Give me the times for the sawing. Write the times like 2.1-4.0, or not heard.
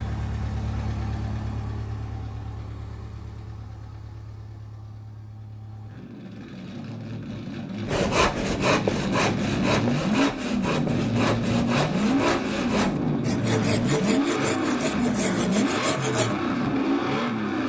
7.8-16.4.